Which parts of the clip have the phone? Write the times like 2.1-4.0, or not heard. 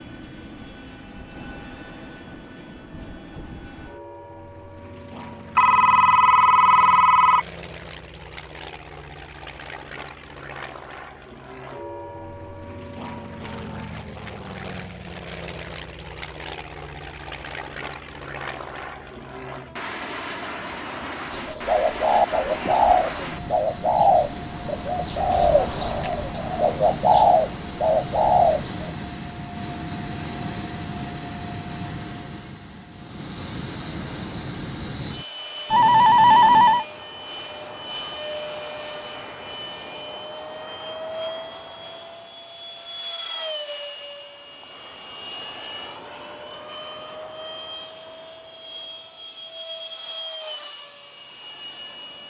5.5-7.5, 35.7-36.9.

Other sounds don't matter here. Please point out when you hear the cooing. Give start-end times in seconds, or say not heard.
21.3-28.9.